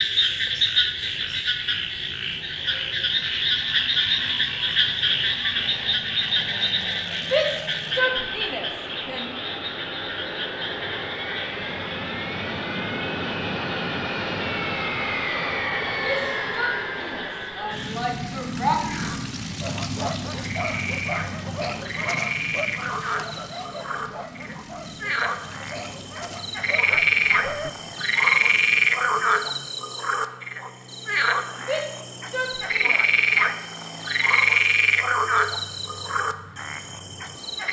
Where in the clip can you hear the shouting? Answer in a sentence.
The shouting can be heard from 7.2 to 9.3 s, from 16.0 to 18.8 s and from 31.6 to 33.0 s.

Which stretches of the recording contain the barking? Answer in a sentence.
The barking can be heard from 19.6 to 27.7 s.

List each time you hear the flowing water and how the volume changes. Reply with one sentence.
The flowing water can't be heard in this clip.